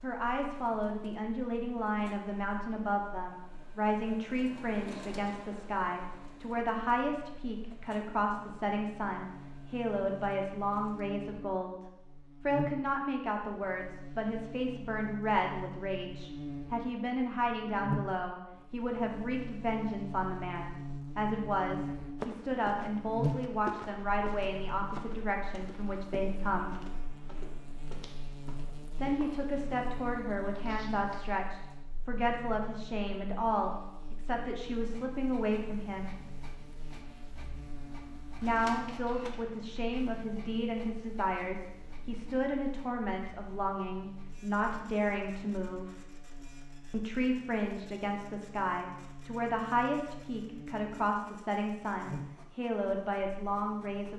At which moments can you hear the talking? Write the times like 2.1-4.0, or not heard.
0.0-26.8, 28.9-36.1, 38.4-45.9, 46.9-54.1.